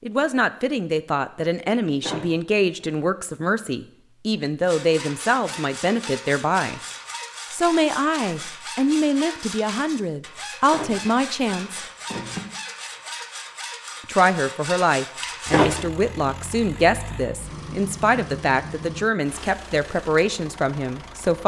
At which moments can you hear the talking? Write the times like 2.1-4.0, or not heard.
0.0-6.8, 7.5-11.8, 14.1-21.4.